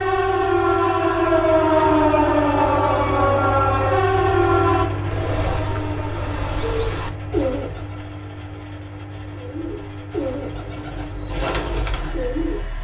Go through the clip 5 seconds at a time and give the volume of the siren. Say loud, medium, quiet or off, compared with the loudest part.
loud, quiet, off.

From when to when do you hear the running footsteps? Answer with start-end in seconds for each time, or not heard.
not heard.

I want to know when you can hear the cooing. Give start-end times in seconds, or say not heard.
5.1-8.0, 9.3-12.7.